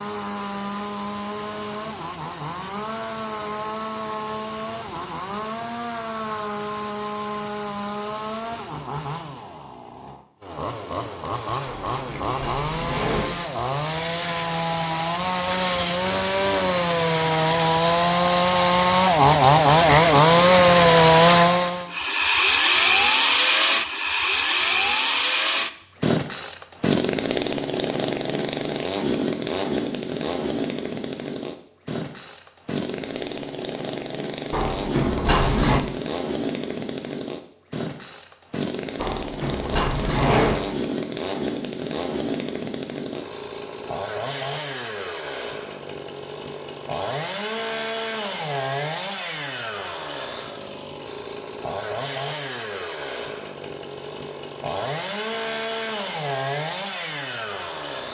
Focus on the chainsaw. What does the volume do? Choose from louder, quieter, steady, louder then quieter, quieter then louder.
louder then quieter.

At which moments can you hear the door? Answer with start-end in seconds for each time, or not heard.
11.7-13.3, 34.5-35.8, 39.0-40.6.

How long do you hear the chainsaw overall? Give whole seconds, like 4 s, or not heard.
58 s.